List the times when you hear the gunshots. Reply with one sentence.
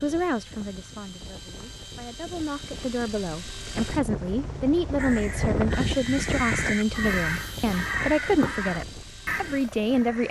You can't hear the gunshots here.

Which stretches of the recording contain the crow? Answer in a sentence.
You can hear the crow from 5.0 to 10.2 s.